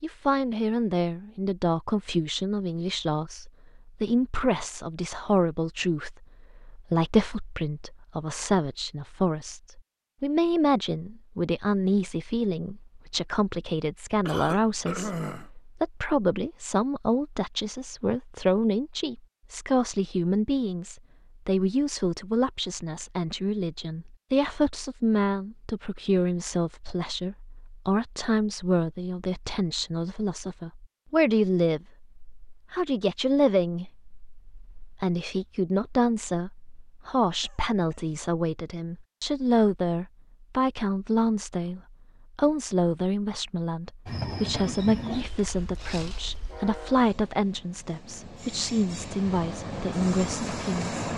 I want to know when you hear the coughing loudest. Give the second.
15 s.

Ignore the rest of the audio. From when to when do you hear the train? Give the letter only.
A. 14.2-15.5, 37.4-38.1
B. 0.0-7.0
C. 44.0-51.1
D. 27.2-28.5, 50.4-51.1
C.